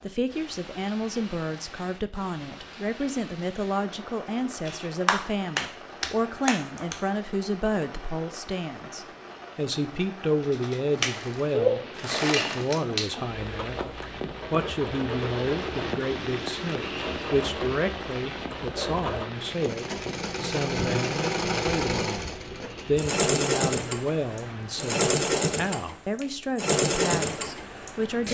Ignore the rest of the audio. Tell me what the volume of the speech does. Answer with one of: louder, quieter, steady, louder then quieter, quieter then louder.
steady.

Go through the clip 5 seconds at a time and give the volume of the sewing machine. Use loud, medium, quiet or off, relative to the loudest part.
off, off, medium, medium, loud, loud.